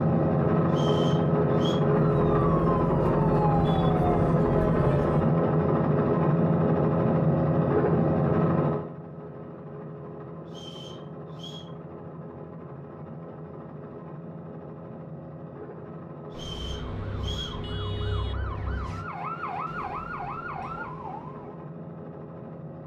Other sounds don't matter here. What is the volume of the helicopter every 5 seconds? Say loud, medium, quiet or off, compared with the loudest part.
loud, loud, quiet, quiet, quiet.